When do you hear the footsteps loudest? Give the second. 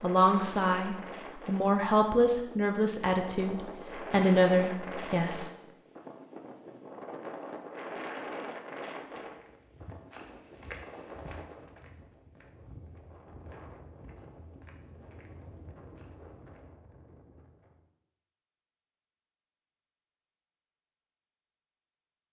11 s.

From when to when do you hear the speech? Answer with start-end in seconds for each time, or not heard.
0.0-5.5.